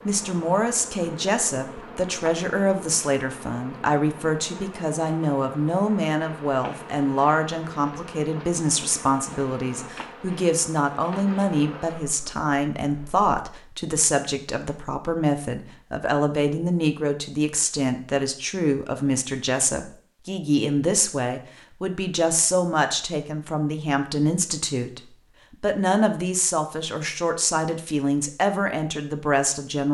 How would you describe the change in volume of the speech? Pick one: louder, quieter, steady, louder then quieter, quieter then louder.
steady.